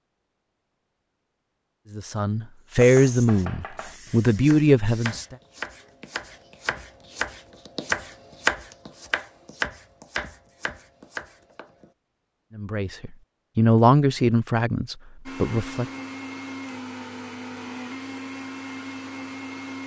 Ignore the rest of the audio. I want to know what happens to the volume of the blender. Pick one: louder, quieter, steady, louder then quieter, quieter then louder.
steady.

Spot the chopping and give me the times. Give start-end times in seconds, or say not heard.
2.8-11.9.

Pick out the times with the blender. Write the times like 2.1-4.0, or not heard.
15.2-19.8.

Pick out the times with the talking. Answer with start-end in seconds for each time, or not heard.
1.9-5.3, 12.6-15.8.